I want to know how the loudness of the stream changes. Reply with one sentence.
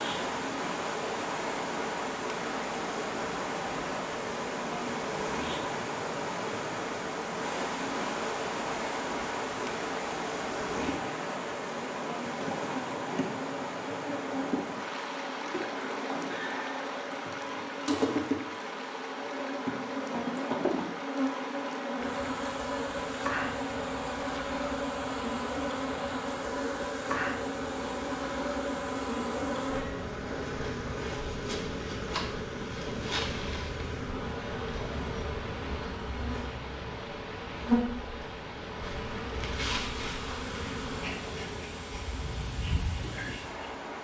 The loudness of the stream goes down.